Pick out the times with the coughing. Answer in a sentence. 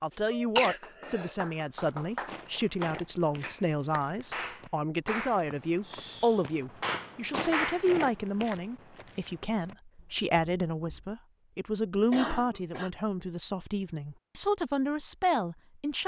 You can hear the coughing from 0.3 to 1.4 s and from 12.0 to 12.9 s.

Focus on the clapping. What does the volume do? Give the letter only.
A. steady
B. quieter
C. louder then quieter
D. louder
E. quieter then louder
D.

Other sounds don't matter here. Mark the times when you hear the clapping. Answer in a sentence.
You can hear the clapping from 0.1 to 7.8 s.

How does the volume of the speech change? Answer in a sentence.
The volume of the speech stays about the same.